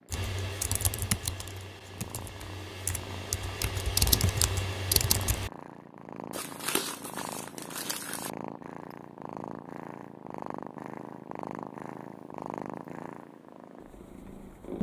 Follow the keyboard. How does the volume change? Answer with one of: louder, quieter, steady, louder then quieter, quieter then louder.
quieter then louder.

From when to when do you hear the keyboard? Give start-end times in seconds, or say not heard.
0.1-5.5.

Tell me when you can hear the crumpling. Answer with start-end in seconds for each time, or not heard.
6.3-8.3.